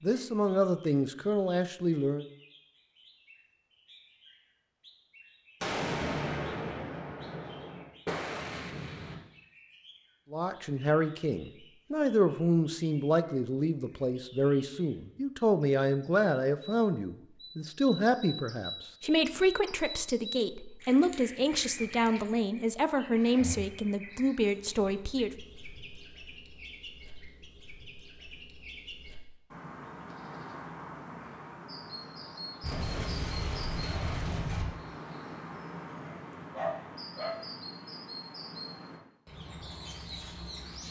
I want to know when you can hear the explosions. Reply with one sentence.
The explosions can be heard from 5.6 to 9.2 s and from 32.6 to 34.6 s.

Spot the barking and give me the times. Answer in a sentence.
The barking can be heard from 36.0 to 37.4 s.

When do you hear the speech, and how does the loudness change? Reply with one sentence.
The speech can be heard briefly from 0.0 to 2.2 s; and from 10.3 to 25.3 s, at a steady volume.